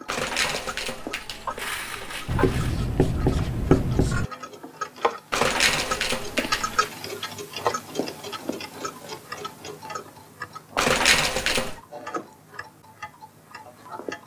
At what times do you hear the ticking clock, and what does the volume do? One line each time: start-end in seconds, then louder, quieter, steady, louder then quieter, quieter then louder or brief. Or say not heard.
0.0-14.2 louder then quieter.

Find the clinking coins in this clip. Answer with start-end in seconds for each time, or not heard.
0.1-2.8, 5.3-6.9, 10.8-11.8.